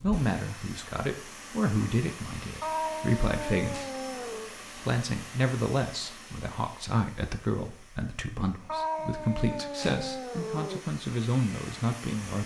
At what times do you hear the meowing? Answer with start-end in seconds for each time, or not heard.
2.6-4.5, 8.7-10.8.